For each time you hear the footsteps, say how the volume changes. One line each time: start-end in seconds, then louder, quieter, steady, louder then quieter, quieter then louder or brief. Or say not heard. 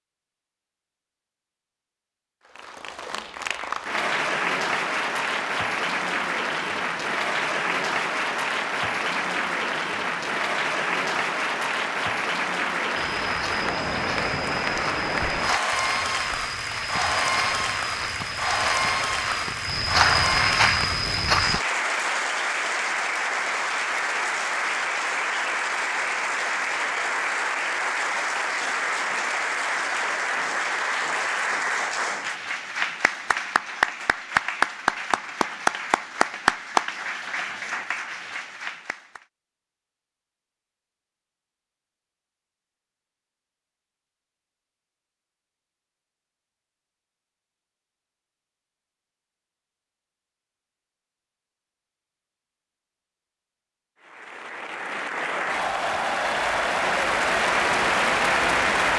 12.9-21.6 louder.